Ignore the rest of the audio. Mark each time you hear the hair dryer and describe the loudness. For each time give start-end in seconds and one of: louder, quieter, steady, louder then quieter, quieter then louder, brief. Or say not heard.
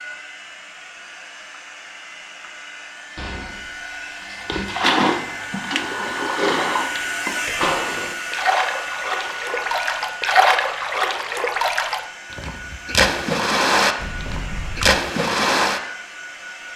0.0-16.7 louder then quieter.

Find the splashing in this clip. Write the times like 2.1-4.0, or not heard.
4.5-15.8.